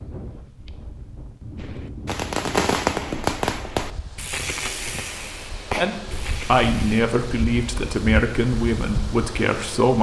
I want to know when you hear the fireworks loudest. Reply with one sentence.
The loudest moment of the fireworks is at 3 seconds.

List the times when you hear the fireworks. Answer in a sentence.
You can hear the fireworks from 1.6 to 7.0 s.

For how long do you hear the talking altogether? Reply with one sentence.
You can hear the talking for 4 seconds altogether.